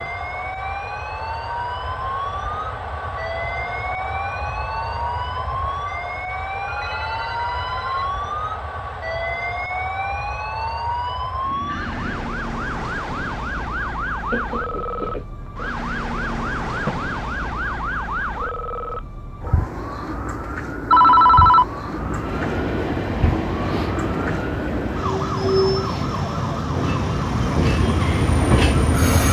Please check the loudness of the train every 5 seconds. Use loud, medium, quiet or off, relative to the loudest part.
medium, medium, medium, off, loud, loud.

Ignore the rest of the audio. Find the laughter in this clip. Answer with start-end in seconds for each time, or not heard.
14.3-15.2.